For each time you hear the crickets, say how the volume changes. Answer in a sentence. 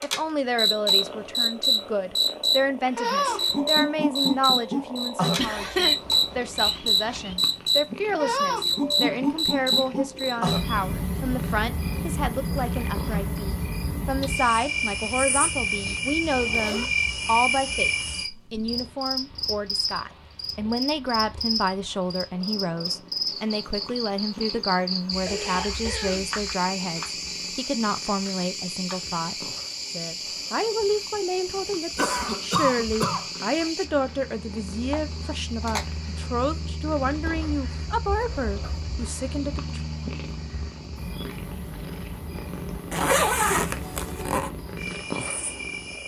You can hear the crickets from 0.0 to 46.0 s, getting quieter.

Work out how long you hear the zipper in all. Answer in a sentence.
The zipper can be heard for 4 seconds in total.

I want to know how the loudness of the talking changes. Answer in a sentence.
The loudness of the talking stays about the same.